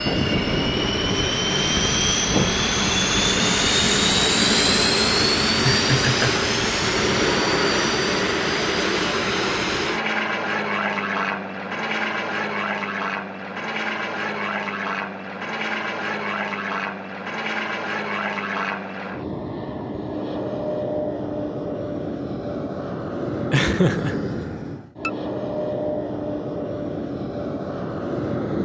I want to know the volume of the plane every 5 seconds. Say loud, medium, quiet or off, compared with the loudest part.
loud, loud, medium, medium, medium, medium.